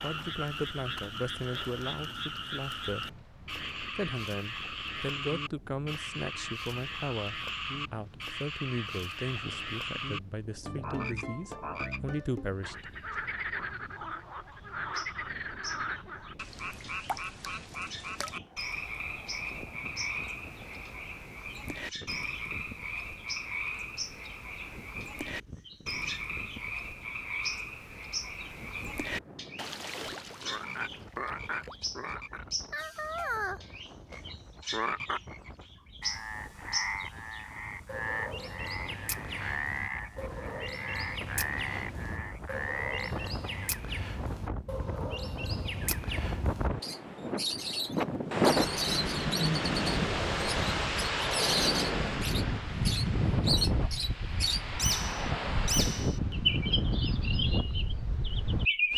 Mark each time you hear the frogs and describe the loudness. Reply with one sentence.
The frogs can be heard from 0.0 to 43.8 s, at a steady volume.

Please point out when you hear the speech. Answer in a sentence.
You can hear the speech from 0.0 to 3.2 s and from 4.0 to 12.9 s.